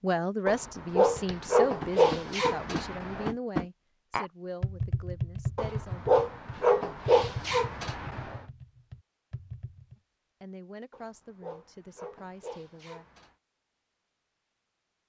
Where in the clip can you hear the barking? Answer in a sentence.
The barking can be heard from 0.5 to 3.3 s, from 5.5 to 8.4 s and from 10.9 to 13.3 s.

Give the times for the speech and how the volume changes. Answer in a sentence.
You can hear the speech from 0.0 to 6.0 s, getting quieter; and briefly from 10.4 to 13.1 s.